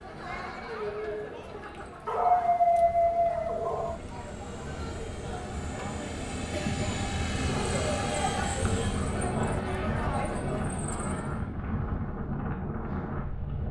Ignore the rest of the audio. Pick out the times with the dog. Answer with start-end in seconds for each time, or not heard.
2.0-4.0.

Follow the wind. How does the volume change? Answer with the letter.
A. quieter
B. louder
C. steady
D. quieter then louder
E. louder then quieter
B.